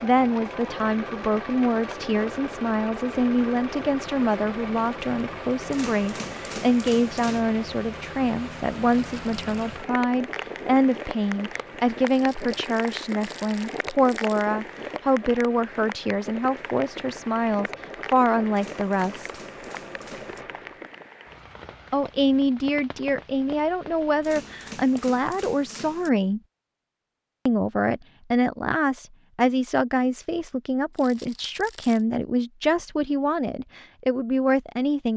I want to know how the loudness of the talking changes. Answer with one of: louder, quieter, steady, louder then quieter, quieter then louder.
steady.